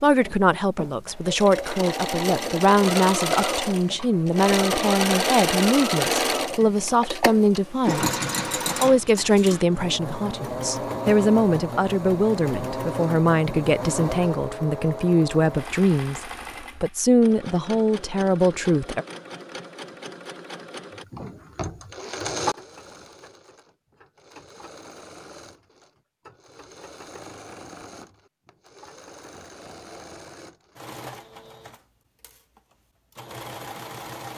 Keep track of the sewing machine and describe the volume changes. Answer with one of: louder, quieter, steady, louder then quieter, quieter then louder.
quieter.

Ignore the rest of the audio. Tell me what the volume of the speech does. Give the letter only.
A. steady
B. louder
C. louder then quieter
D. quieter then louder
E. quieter
A.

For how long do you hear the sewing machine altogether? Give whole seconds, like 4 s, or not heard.
34 s.